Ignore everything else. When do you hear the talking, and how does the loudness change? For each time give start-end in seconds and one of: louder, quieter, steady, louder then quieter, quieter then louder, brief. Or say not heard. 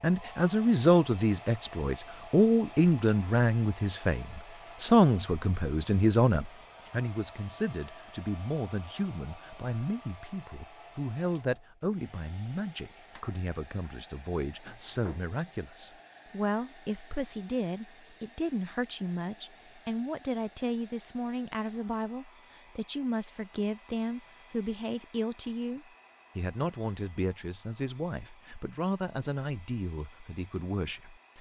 0.0-31.3 quieter.